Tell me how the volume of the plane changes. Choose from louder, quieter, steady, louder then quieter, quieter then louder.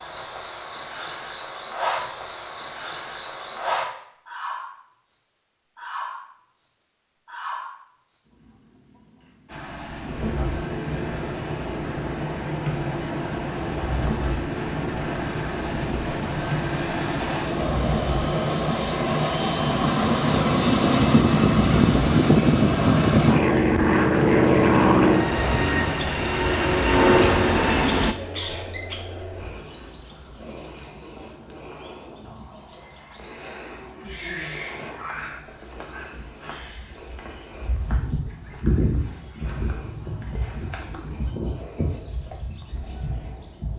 louder.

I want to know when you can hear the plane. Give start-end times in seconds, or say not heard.
9.4-28.1.